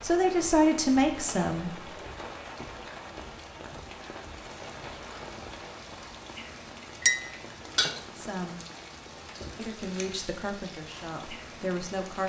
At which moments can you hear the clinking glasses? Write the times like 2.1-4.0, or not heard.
7.0-8.0.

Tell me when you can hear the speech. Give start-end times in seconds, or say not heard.
0.0-1.7, 8.2-8.6, 9.6-12.2.